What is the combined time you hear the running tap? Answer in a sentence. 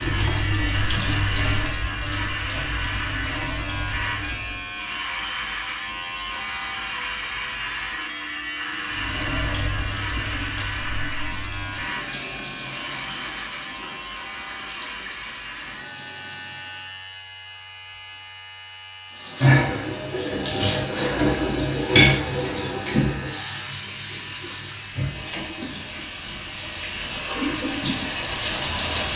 You can hear the running tap for 23 seconds altogether.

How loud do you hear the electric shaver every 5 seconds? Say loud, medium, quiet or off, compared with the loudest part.
loud, loud, loud, medium, medium, medium.